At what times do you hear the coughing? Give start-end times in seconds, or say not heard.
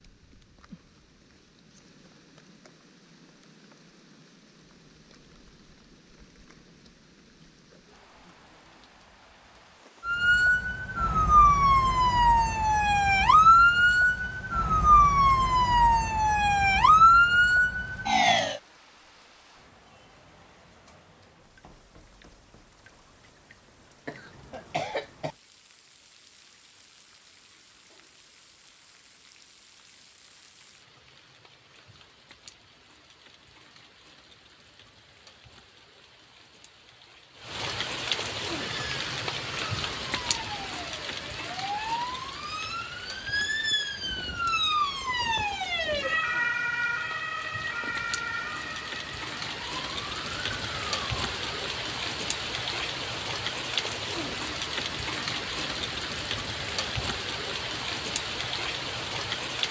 24.1-25.4.